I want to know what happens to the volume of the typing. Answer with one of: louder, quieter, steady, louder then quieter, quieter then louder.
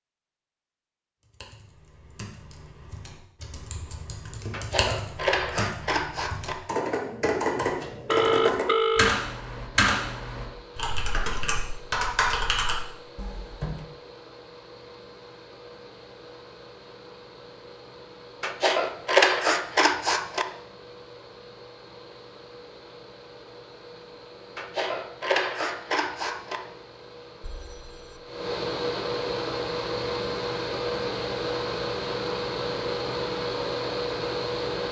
louder.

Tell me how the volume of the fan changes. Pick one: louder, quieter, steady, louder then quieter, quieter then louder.
louder.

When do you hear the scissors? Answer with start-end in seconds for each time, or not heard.
4.5-6.5, 18.4-20.4, 24.6-26.6.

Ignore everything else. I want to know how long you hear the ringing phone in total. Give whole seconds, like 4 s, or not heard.
2 s.